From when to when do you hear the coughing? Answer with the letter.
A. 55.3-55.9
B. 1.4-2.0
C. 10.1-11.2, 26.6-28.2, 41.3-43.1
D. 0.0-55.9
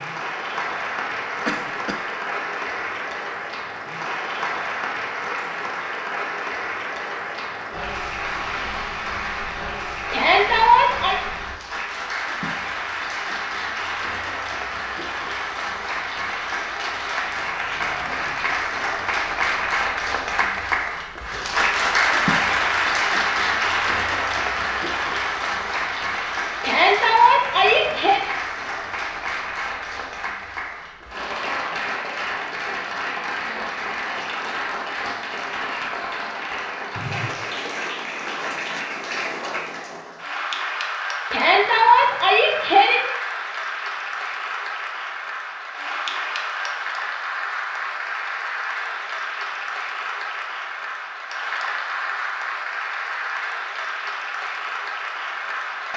B.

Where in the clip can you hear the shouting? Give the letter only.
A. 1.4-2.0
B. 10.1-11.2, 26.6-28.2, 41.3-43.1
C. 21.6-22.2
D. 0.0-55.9
B.